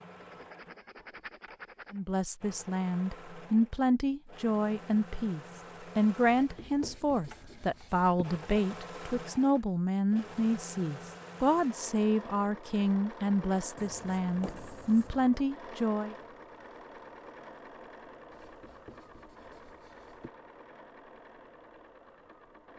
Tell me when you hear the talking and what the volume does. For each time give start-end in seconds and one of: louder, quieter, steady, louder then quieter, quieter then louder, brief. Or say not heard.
1.9-16.1 steady.